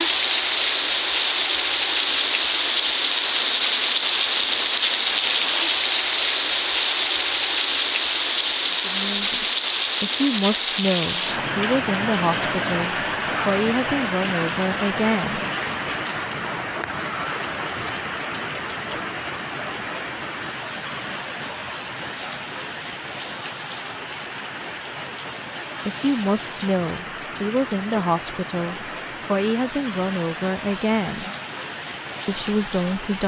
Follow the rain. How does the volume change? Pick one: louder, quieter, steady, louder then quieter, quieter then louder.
quieter.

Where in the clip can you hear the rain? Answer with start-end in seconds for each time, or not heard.
0.0-33.2.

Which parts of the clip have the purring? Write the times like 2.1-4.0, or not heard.
not heard.